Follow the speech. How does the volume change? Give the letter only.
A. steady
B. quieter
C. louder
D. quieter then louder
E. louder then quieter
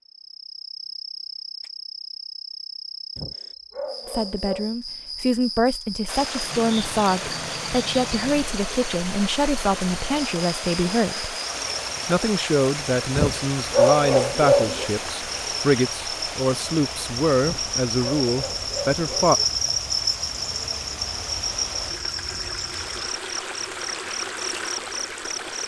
A.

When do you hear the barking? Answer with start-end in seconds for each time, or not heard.
3.1-4.7, 13.2-14.9, 17.4-19.3.